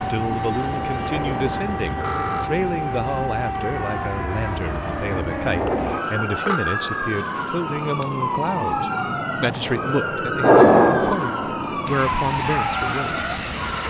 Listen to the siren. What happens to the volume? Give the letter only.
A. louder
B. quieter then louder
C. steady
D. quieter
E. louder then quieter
C.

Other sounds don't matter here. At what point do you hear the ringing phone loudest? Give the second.
11 s.